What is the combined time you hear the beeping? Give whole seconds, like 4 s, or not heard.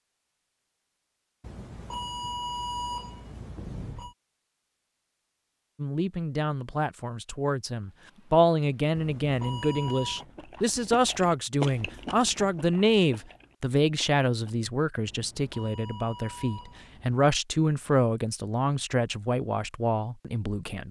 6 s.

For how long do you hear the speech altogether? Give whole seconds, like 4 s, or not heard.
15 s.